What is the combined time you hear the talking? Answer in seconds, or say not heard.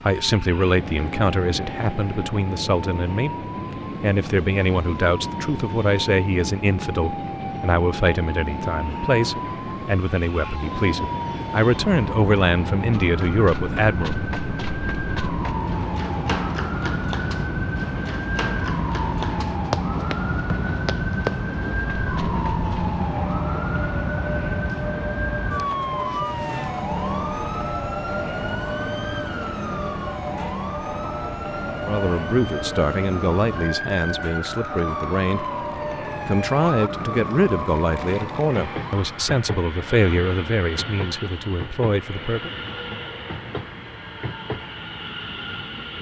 24 s.